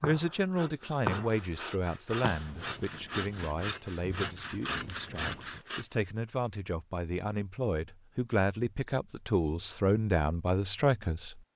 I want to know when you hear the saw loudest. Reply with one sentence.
The loudest moment of the saw is at 1 second.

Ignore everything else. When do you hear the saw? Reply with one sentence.
You can hear the saw from 0.0 to 6.0 s.